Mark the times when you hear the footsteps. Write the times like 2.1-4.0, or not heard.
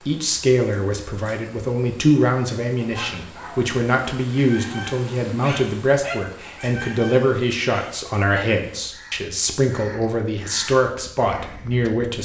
not heard.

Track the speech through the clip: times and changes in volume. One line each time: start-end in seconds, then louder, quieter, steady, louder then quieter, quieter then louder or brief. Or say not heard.
0.0-12.1 steady.